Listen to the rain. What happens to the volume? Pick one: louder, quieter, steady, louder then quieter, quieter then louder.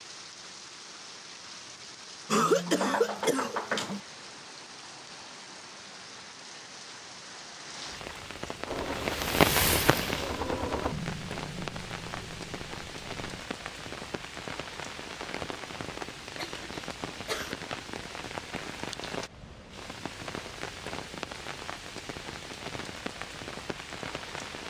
louder then quieter.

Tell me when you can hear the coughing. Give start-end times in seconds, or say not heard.
2.2-4.0, 16.4-17.6.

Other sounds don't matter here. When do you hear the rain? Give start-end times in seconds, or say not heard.
0.0-24.6.